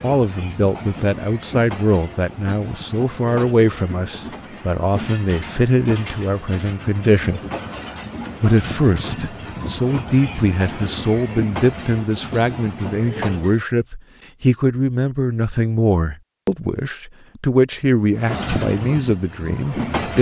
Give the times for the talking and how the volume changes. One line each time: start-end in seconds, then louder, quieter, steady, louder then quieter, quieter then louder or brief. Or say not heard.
0.0-7.4 steady
8.4-20.1 steady.